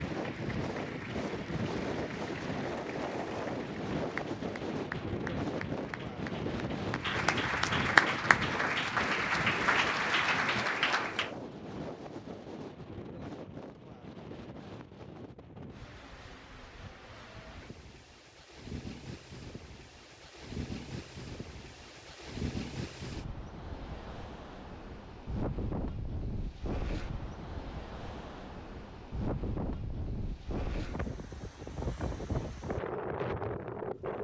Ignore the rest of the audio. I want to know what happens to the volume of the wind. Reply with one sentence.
The loudness of the wind goes down, then up.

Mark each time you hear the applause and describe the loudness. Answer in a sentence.
The applause can be heard from 0.0 to 11.3 s, getting louder.